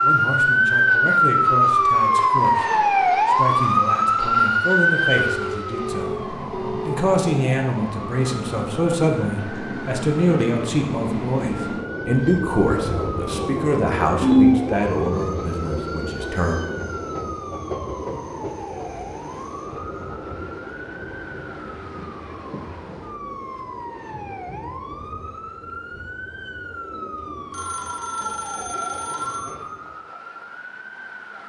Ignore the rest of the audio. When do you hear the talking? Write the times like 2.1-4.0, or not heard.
0.0-16.6.